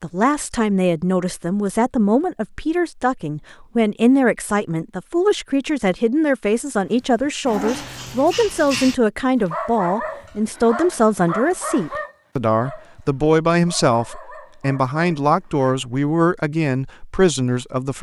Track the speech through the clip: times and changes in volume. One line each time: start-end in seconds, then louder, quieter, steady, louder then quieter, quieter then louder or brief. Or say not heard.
0.0-17.9 steady.